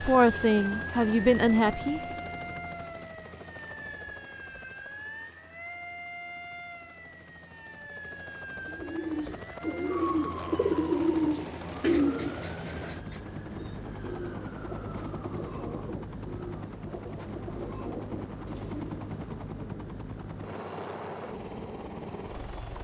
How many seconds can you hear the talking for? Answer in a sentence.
You can hear the talking for 2 seconds altogether.